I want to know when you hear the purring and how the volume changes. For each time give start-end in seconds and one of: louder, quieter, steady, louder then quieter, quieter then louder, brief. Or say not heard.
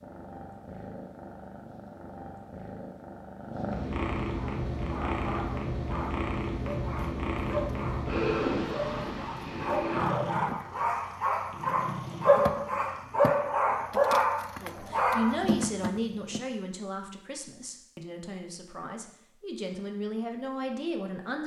0.0-13.3 louder then quieter.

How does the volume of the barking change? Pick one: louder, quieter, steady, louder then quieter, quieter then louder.
louder.